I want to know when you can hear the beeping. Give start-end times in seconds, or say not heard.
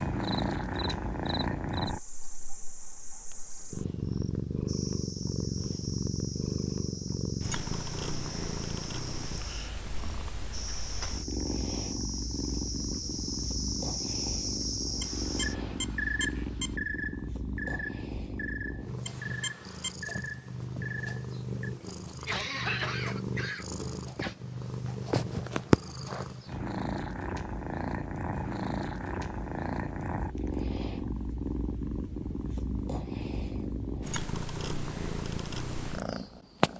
15.0-16.8, 19.1-19.9.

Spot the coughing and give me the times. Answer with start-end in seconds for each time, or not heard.
21.8-24.4.